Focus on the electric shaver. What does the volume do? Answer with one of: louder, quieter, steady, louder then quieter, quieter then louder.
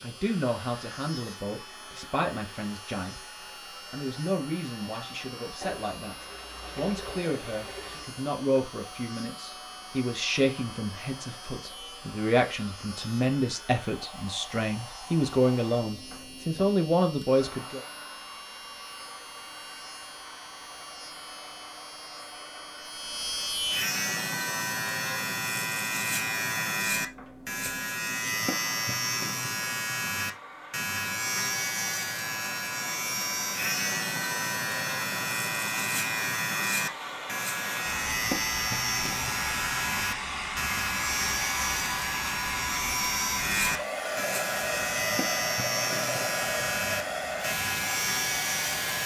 louder.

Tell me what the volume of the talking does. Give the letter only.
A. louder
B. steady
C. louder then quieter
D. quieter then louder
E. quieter
A.